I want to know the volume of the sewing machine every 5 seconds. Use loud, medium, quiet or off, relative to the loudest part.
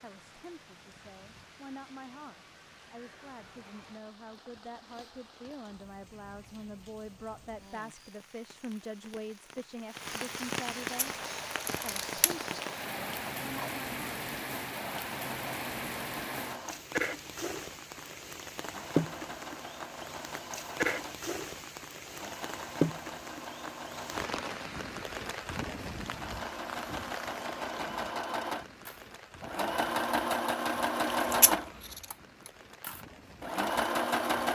off, off, quiet, quiet, quiet, medium, loud.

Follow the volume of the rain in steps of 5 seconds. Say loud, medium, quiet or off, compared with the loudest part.
quiet, quiet, loud, loud, loud, medium, quiet.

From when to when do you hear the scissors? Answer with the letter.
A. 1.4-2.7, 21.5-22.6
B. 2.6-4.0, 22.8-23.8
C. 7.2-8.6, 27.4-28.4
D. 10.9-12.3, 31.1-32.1
D.